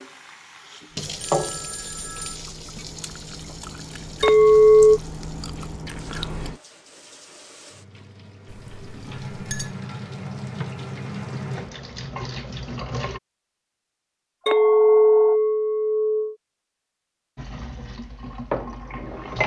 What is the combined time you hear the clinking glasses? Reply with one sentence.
You can hear the clinking glasses for 4 seconds altogether.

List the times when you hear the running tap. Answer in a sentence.
You can hear the running tap from 0.0 to 13.2 s and from 17.4 to 19.4 s.